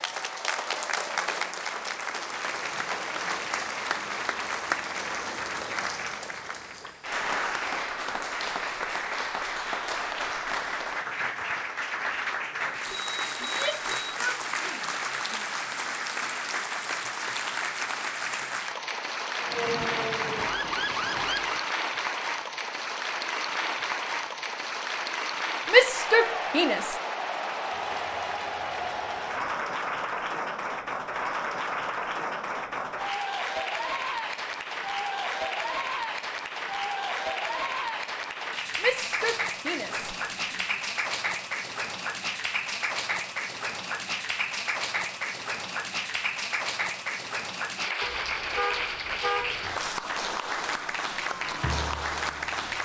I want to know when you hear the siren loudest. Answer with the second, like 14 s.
21 s.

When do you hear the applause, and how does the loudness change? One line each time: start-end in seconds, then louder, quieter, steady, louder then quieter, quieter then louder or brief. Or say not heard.
0.0-52.7 steady.